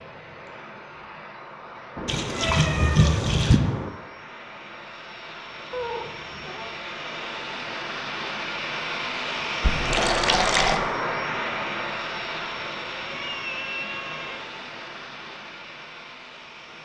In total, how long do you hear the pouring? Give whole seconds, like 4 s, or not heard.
3 s.